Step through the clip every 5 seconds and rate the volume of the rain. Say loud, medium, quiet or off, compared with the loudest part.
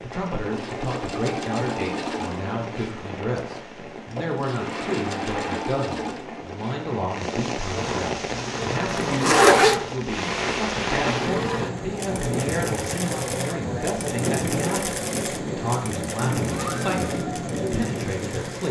medium, loud, loud, loud.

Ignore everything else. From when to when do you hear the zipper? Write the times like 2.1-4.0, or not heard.
8.9-9.8.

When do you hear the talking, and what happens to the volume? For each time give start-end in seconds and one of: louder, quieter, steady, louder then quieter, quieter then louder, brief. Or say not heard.
0.0-18.6 steady.